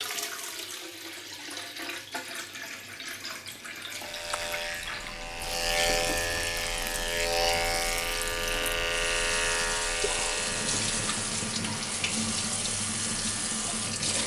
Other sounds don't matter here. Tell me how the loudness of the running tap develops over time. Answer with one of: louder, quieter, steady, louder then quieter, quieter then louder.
louder.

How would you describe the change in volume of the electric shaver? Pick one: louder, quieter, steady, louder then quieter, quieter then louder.
quieter.